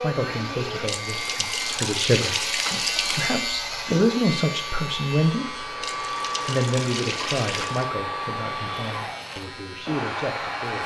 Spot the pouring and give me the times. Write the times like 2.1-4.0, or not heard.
0.8-3.4, 5.8-7.8.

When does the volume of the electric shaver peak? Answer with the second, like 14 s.
3 s.